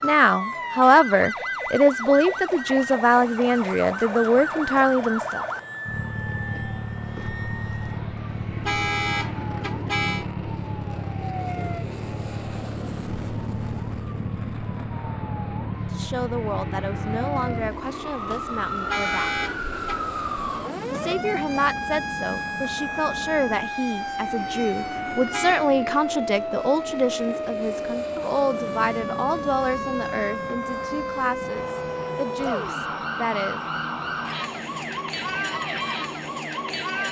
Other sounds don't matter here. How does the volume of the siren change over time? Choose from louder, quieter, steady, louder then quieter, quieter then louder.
steady.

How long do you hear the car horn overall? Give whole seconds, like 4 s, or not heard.
4 s.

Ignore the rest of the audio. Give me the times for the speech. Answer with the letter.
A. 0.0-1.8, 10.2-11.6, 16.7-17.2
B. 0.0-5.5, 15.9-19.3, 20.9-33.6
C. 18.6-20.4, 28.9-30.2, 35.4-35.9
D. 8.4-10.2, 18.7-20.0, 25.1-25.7
B.